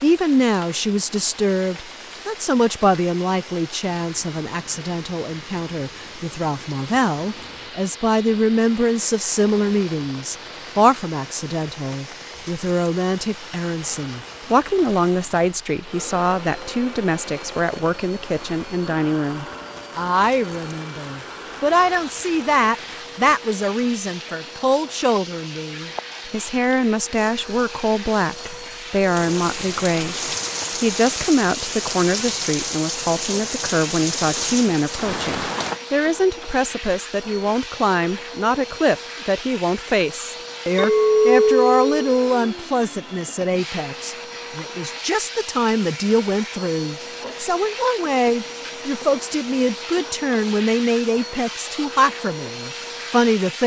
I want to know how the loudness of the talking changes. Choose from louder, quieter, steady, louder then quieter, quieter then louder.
steady.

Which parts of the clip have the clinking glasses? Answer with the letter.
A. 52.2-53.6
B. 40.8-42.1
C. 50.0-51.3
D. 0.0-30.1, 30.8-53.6
B.